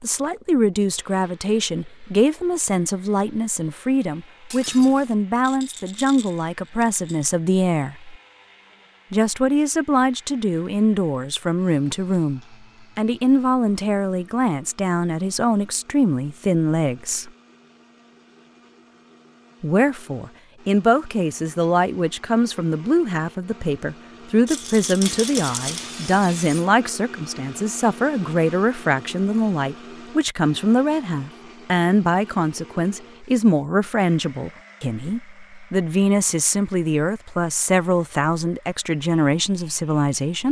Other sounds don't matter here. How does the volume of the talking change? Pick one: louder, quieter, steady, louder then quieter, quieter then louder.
steady.